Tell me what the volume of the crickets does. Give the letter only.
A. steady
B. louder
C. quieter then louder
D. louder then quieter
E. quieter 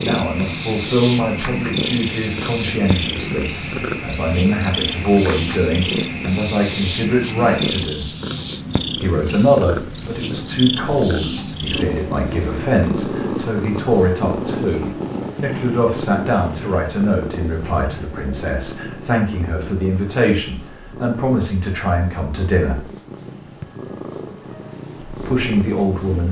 B.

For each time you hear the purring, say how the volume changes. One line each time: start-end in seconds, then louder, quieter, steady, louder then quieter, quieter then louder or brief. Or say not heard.
0.0-26.2 quieter.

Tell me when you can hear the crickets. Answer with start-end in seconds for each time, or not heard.
0.0-26.2.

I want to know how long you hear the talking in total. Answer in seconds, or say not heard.
23 s.